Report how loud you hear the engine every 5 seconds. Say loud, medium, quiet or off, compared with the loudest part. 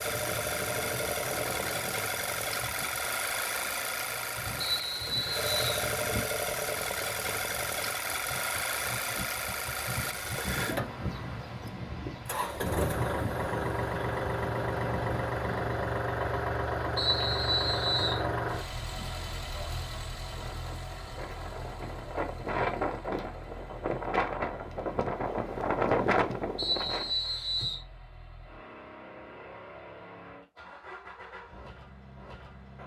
loud, loud, loud, loud, quiet, quiet, quiet.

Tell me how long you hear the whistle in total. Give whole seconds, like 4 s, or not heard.
4 s.